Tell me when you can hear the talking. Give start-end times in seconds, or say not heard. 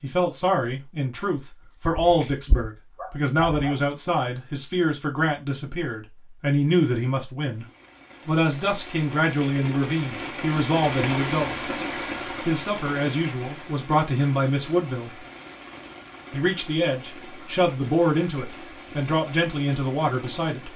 0.0-7.7, 8.2-11.6, 12.4-15.1, 16.3-20.7.